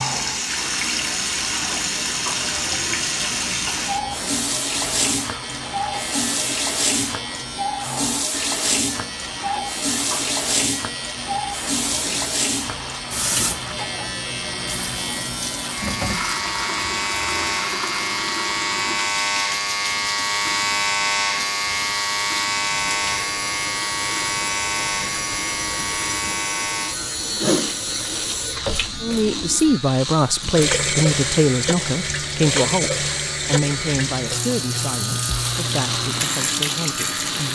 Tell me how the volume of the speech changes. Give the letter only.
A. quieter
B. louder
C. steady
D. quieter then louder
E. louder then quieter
A.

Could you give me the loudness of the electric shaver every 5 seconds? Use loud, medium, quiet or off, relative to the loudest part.
medium, medium, medium, loud, loud, medium, medium, medium.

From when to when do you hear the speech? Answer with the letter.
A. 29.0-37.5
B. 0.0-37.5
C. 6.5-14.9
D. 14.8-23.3
A.